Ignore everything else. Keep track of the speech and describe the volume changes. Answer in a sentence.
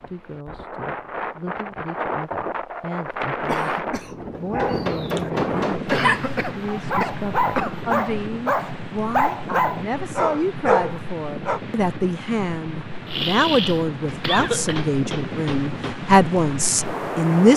The loudness of the speech goes up.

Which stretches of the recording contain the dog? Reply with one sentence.
The dog can be heard from 4.5 to 11.6 s.